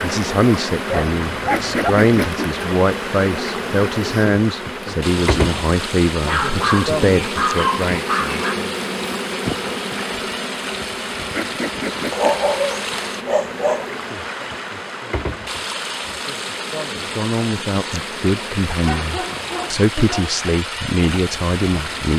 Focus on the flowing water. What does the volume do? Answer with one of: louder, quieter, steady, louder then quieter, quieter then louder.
steady.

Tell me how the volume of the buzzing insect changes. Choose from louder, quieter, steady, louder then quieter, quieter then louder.
quieter.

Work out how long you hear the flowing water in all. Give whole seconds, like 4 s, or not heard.
22 s.